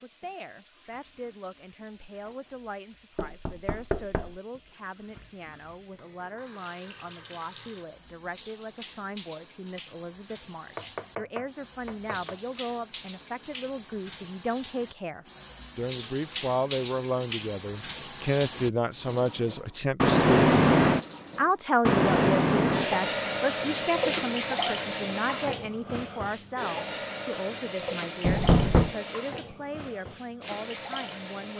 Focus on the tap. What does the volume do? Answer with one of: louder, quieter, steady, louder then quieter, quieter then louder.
louder then quieter.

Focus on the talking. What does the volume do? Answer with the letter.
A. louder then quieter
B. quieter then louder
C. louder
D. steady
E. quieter
A.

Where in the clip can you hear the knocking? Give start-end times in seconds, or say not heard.
3.1-4.3, 10.8-12.3, 28.2-28.9.